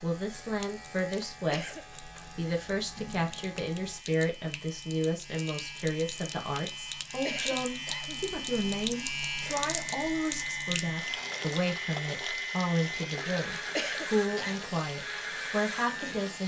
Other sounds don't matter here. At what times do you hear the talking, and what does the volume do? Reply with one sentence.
The talking can be heard from 0.0 to 16.4 s, at a steady volume.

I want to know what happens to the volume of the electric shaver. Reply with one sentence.
The volume of the electric shaver goes up.